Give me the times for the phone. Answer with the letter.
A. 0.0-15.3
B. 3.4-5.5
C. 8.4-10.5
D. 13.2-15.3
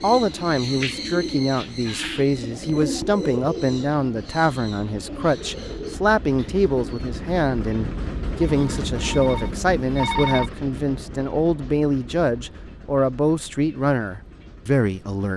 C.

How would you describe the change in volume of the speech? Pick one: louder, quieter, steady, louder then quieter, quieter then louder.
steady.